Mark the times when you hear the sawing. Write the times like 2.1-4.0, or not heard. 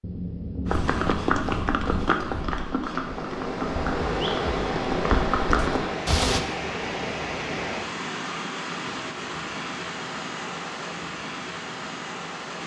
not heard.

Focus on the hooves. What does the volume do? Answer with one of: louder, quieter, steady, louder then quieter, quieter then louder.
quieter then louder.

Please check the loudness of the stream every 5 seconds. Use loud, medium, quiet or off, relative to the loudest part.
loud, loud, medium.